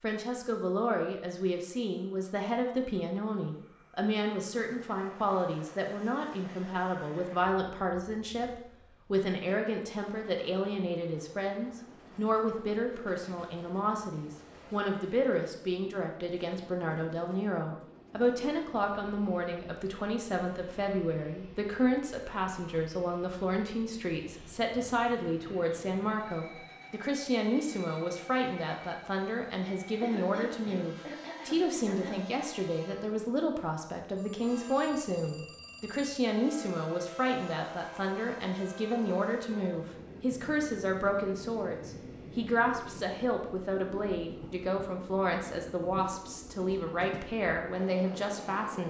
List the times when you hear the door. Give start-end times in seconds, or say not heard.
not heard.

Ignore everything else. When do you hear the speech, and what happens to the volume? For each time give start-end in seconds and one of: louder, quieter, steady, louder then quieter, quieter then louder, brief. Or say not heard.
0.0-48.8 steady.